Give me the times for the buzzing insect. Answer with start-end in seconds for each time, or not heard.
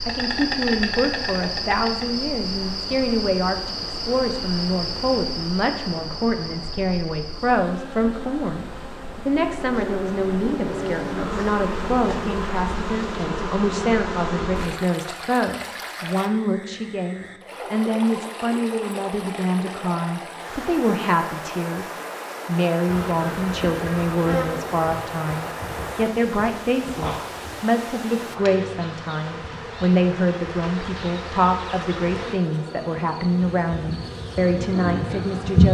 0.0-14.7, 22.9-35.6.